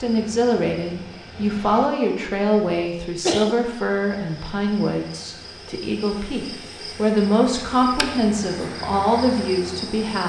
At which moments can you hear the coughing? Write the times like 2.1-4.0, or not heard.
2.6-3.5.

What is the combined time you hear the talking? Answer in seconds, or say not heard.
10 s.